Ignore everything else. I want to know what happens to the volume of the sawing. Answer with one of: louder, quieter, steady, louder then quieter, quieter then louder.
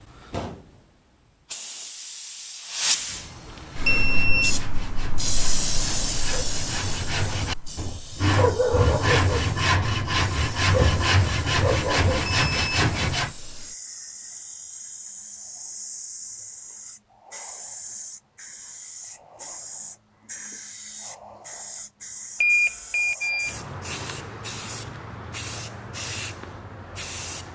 louder.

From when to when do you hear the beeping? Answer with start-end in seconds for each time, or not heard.
3.9-4.6, 12.2-12.8, 22.4-23.6.